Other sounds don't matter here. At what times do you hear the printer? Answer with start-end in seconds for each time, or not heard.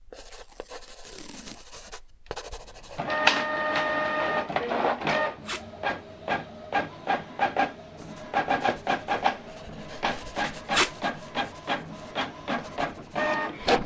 3.0-13.8.